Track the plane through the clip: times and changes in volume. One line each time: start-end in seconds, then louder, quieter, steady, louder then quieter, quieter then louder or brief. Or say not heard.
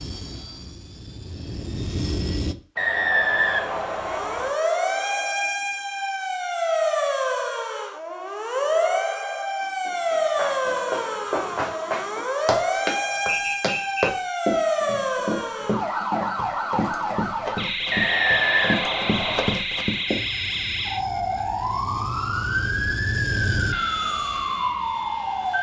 0.0-2.5 brief
20.1-25.5 louder then quieter.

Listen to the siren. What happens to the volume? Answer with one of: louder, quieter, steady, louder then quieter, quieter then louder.
steady.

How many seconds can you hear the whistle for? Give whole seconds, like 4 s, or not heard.
4 s.